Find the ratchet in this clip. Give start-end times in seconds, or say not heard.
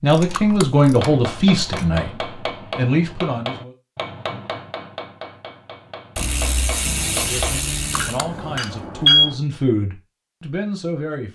0.1-1.9, 6.2-8.2.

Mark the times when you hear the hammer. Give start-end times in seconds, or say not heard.
0.9-9.4.